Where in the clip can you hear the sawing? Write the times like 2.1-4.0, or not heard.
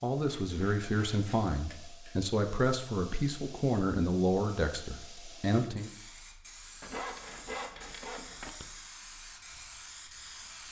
0.2-2.2, 6.8-8.7.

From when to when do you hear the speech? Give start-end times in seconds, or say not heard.
0.0-5.9.